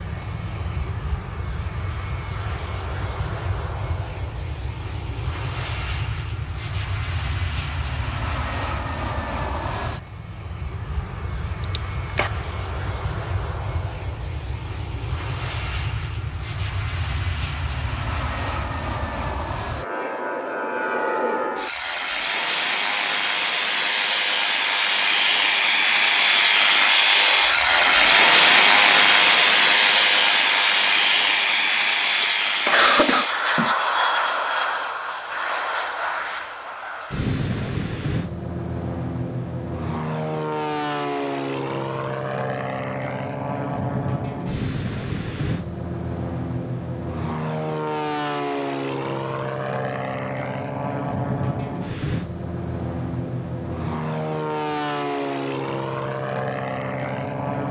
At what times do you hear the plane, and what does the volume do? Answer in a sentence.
The plane can be heard from 0.0 to 57.6 s, getting louder then quieter.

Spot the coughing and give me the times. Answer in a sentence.
The coughing can be heard from 11.6 to 12.3 s and from 32.1 to 33.8 s.